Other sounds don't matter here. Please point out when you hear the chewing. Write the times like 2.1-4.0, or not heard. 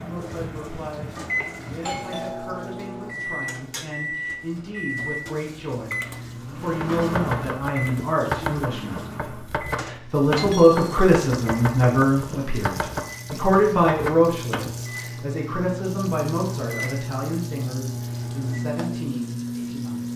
not heard.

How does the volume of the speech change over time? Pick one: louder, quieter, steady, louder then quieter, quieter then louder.
louder then quieter.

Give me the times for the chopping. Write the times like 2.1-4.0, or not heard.
6.6-14.8.